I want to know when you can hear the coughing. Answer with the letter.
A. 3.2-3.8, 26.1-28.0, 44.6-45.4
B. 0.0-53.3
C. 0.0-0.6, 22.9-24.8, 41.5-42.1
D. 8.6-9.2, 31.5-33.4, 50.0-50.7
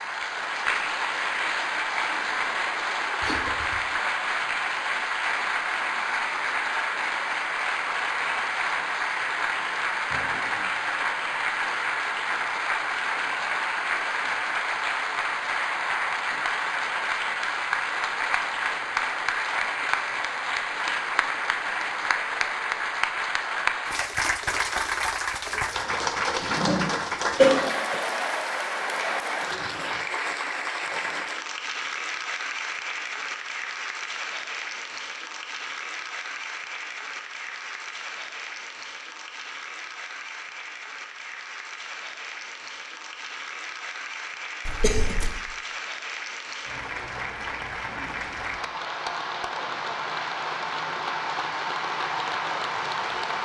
A.